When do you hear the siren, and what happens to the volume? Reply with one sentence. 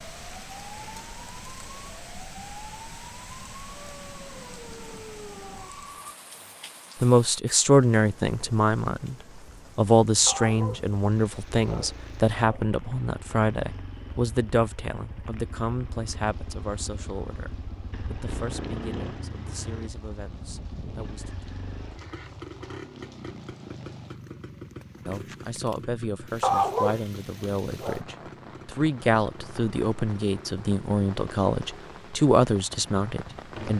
The siren can be heard from 0.0 to 6.2 s, at a steady volume.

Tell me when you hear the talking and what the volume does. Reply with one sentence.
The talking can be heard briefly from 7.0 to 9.2 s; from 9.8 to 21.4 s, getting quieter; and from 25.1 to 33.7 s, getting louder.